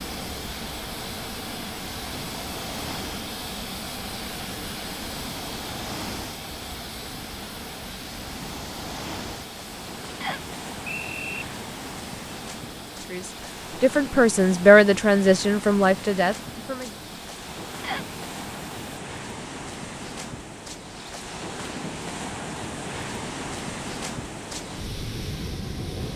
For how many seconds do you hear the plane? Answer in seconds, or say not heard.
19 s.